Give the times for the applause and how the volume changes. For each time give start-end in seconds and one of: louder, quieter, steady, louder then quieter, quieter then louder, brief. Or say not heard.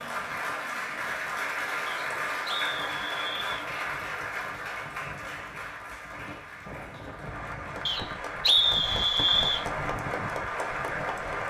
0.0-11.4 quieter then louder.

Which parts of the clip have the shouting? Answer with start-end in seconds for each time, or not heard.
not heard.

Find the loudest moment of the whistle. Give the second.
9 s.